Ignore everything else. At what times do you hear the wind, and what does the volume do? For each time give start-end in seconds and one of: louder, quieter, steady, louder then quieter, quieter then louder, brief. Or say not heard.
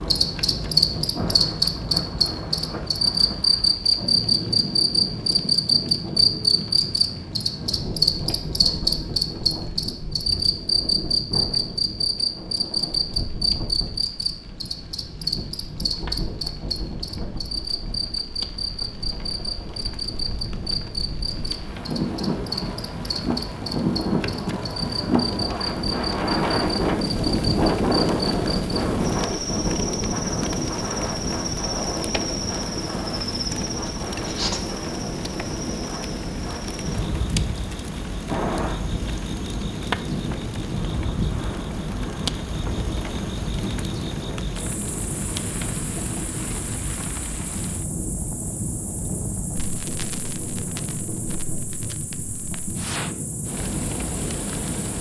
0.0-54.9 louder then quieter.